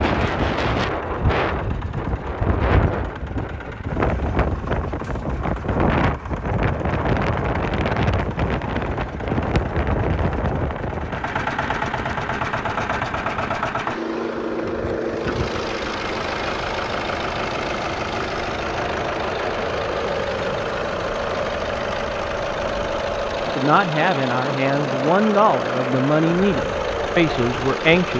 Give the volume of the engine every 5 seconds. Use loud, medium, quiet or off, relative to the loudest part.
quiet, quiet, loud, loud, loud, loud.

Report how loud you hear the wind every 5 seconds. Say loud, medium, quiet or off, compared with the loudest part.
loud, loud, medium, quiet, quiet, quiet.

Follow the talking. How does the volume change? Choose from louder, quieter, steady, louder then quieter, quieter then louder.
steady.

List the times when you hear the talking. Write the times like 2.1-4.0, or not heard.
23.6-28.1.